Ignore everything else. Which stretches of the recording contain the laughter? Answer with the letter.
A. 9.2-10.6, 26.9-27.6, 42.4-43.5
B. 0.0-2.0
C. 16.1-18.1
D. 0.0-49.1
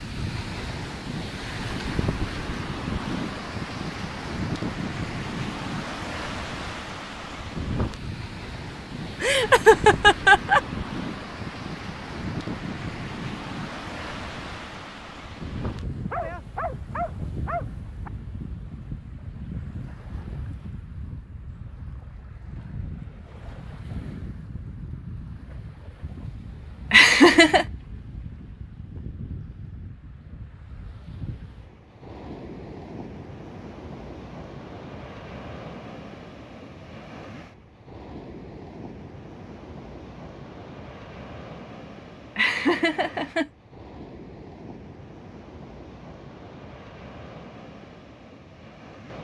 A.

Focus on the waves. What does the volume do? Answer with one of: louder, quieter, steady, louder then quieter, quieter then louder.
quieter.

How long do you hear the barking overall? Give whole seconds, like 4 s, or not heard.
2 s.